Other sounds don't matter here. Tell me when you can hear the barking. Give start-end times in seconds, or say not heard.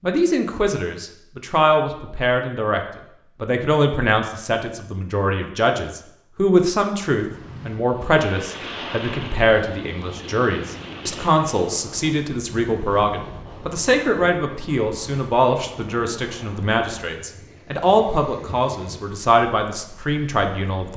not heard.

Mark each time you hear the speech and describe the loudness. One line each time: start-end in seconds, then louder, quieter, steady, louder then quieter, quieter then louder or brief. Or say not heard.
0.0-2.8 brief
3.4-20.9 steady.